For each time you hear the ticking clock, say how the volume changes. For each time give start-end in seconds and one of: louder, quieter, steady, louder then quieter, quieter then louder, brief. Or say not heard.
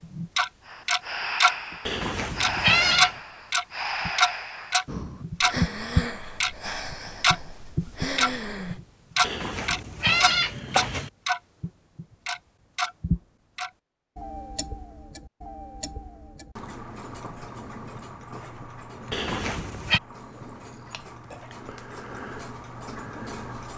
0.0-1.6 brief
2.4-23.7 quieter.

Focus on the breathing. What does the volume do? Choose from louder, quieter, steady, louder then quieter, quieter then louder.
steady.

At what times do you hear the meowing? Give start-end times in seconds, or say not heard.
1.9-3.1, 9.2-11.1, 19.1-20.0.